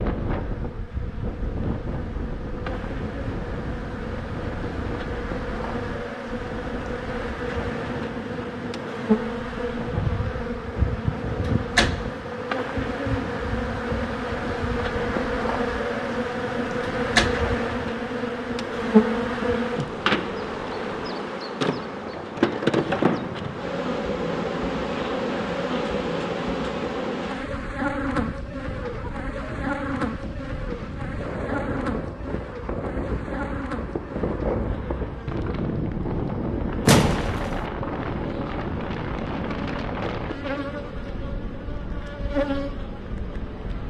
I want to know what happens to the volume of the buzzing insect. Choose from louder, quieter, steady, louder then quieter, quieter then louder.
louder then quieter.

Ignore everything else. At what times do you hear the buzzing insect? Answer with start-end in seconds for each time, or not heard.
0.0-43.8.